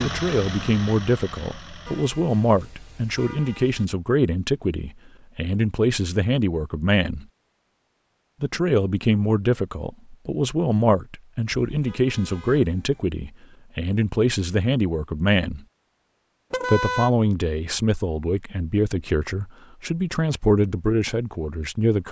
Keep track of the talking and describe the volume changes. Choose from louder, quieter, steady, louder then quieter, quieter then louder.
steady.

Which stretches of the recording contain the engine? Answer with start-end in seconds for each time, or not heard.
0.0-2.0.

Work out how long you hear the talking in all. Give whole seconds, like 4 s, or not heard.
20 s.